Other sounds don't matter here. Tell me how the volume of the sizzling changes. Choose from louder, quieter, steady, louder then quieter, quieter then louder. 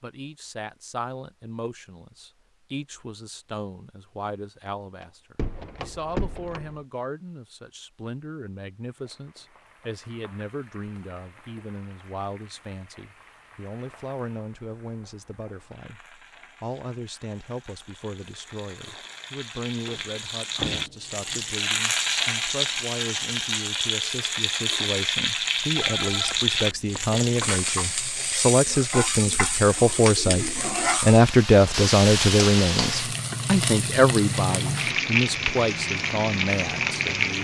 louder.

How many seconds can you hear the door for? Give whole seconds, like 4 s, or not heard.
4 s.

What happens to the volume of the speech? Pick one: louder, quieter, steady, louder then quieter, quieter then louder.
louder.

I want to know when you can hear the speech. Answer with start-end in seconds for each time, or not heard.
0.0-37.3.